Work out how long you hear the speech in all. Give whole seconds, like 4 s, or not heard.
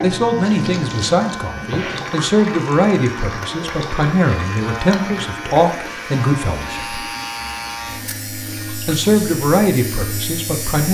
9 s.